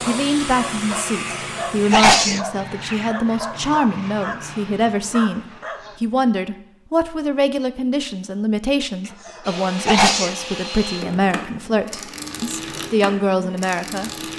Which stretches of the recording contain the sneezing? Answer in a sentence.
The sneezing can be heard from 1.1 to 3.1 s and from 9.2 to 10.3 s.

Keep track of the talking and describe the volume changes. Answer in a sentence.
The loudness of the talking stays about the same.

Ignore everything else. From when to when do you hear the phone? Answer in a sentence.
The phone can't be heard in this clip.